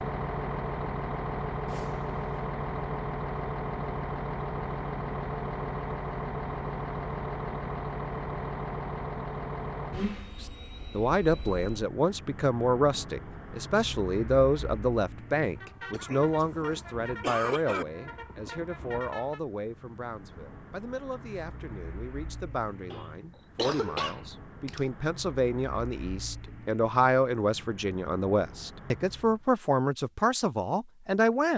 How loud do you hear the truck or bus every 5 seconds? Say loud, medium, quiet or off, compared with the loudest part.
loud, loud, medium, medium, quiet, quiet, off.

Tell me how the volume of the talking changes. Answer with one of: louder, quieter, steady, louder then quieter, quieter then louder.
quieter then louder.